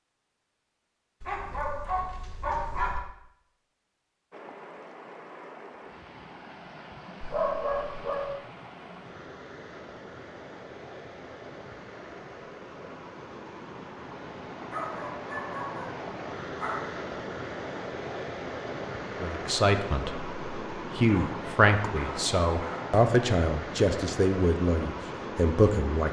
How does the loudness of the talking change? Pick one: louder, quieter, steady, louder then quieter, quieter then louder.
steady.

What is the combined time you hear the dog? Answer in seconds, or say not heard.
7 s.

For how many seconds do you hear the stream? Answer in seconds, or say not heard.
22 s.